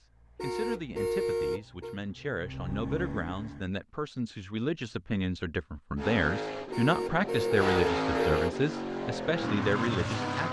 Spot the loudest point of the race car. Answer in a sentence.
The volume of the race car peaks at 8 seconds.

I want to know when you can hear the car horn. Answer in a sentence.
The car horn can be heard from 0.3 to 2.0 s and from 6.7 to 8.6 s.